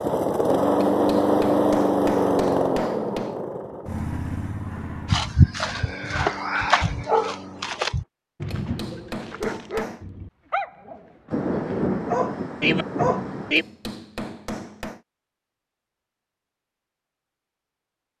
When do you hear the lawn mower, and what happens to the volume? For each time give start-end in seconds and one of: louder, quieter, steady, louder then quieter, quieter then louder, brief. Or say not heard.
0.0-8.1 quieter.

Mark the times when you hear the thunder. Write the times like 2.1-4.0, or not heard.
11.3-13.6.